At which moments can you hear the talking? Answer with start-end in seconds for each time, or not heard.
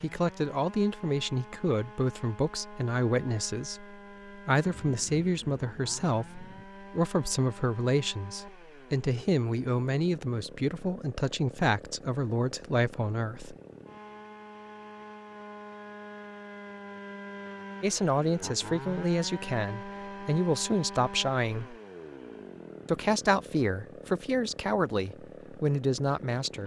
0.0-13.6, 17.8-21.8, 22.9-26.6.